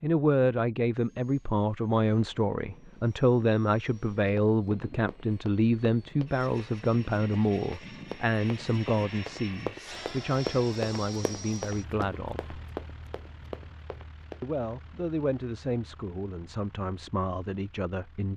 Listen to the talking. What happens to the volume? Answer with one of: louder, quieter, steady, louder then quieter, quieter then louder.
quieter.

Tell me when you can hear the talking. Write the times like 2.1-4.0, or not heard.
0.0-12.6, 14.4-18.3.